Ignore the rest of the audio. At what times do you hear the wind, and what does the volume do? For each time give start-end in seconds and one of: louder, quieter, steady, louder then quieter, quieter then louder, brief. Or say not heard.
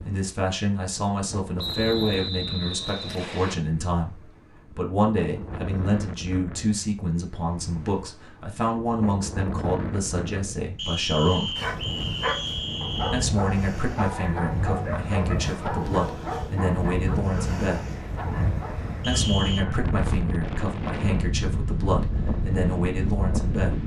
0.0-23.8 louder.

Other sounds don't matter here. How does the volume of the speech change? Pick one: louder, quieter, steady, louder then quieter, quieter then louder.
steady.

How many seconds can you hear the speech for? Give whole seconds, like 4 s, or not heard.
21 s.